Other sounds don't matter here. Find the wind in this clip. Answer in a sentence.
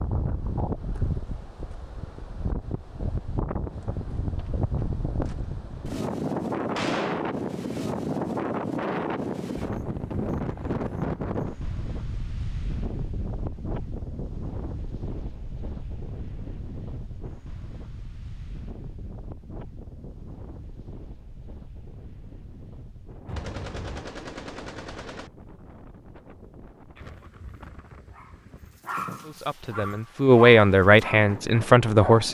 The wind can be heard from 0.0 to 32.2 s.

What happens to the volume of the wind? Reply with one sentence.
The volume of the wind goes down.